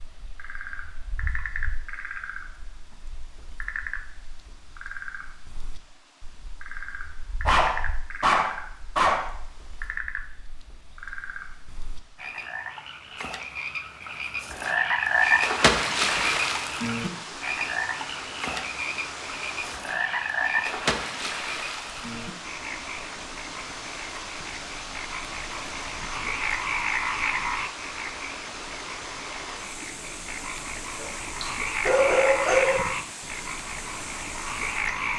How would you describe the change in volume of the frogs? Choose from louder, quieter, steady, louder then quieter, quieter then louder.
louder then quieter.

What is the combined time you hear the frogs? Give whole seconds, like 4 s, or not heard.
35 s.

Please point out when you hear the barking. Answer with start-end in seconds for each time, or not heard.
7.5-9.3, 30.9-32.8.